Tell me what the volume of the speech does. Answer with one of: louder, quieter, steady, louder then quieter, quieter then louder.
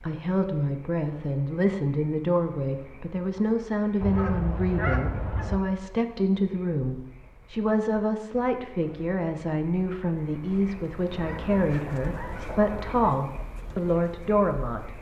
steady.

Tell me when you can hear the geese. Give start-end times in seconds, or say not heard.
4.0-5.6, 11.1-13.1.